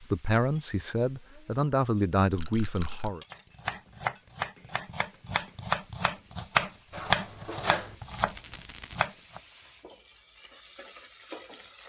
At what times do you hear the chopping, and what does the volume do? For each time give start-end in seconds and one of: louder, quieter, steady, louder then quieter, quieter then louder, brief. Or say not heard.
3.3-9.4 louder then quieter.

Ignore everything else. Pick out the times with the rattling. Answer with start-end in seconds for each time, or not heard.
2.4-3.1, 8.1-9.1.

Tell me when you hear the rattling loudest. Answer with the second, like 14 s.
3 s.